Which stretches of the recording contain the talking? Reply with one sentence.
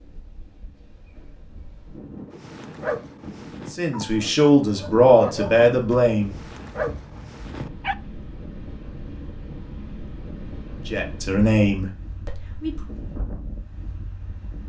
You can hear the talking from 3.7 to 6.3 s and from 10.8 to 12.8 s.